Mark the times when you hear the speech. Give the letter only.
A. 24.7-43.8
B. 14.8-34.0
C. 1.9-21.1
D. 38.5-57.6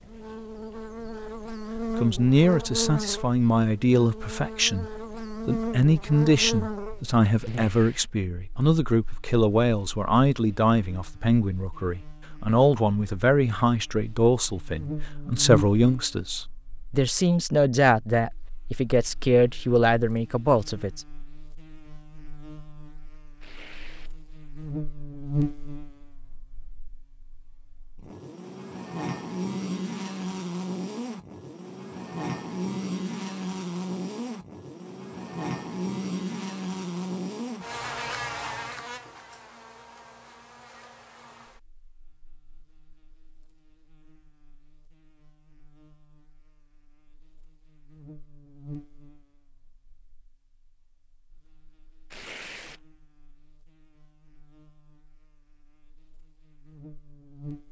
C.